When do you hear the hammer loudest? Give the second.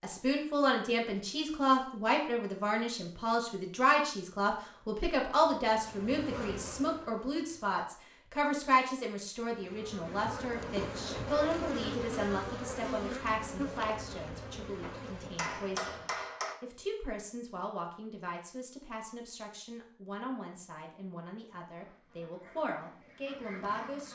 16 s.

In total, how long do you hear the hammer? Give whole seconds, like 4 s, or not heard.
2 s.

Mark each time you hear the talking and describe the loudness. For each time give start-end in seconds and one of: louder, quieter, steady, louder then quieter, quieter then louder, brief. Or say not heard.
0.0-24.0 quieter.